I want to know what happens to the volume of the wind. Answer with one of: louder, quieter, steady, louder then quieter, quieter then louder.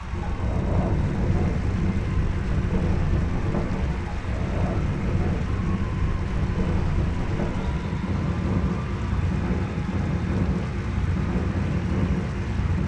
steady.